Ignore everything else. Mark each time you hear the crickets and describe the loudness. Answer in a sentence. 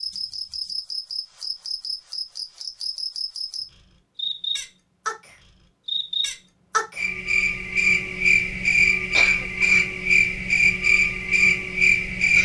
You can hear the crickets from 0.0 to 12.3 s, getting louder.